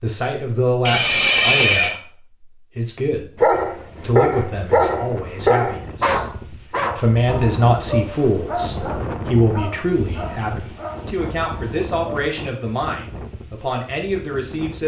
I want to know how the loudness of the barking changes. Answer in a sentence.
The volume of the barking goes down.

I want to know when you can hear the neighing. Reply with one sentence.
The neighing can be heard from 0.8 to 2.0 s.